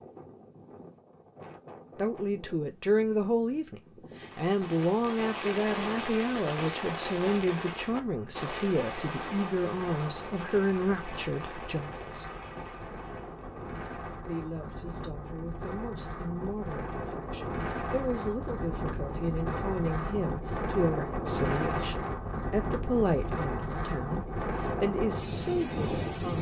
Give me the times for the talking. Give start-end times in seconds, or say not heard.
1.9-12.2, 14.2-26.3.